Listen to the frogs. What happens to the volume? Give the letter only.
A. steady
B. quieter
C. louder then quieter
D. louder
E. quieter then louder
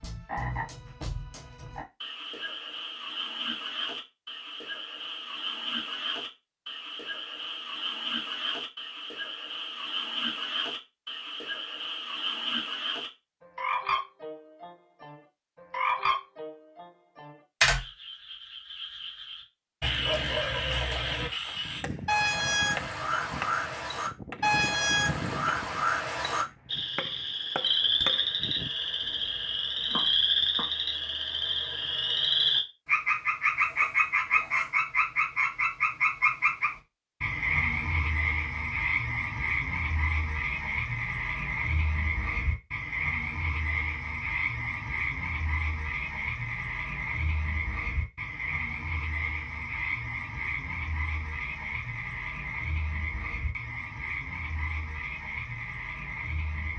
C.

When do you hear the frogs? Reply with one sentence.
The frogs can be heard from 0.0 to 56.7 s.